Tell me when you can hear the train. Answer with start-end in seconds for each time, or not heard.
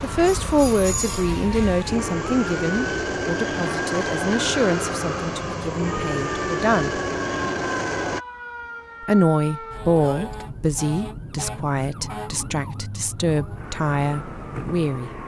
0.0-8.2.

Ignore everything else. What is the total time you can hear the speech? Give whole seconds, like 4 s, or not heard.
13 s.